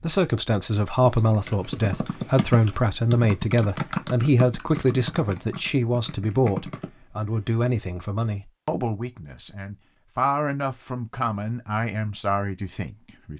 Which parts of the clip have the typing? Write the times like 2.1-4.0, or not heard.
1.0-7.5.